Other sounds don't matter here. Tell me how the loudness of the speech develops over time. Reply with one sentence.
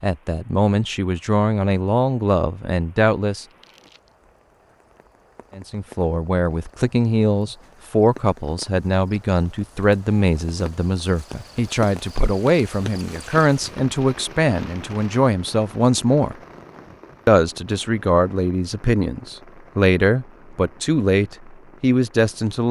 The volume of the speech stays about the same.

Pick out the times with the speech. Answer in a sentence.
You can hear the speech from 0.0 to 3.5 s, from 5.5 to 16.4 s and from 17.2 to 22.6 s.